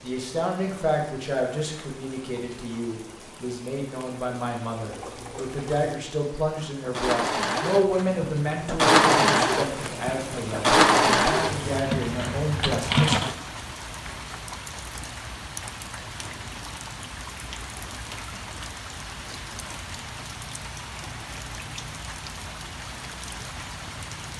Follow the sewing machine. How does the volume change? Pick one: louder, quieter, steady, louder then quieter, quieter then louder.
louder then quieter.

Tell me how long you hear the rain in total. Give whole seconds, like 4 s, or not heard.
24 s.